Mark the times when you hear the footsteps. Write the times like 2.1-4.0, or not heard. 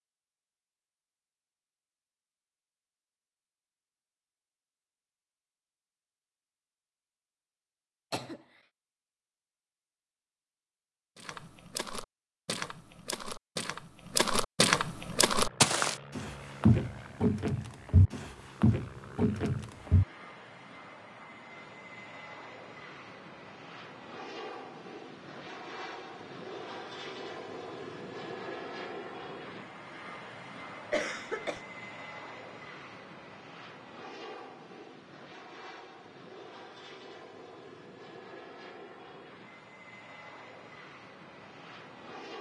11.2-20.1.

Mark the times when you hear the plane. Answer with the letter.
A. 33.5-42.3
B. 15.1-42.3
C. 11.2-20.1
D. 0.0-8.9
B.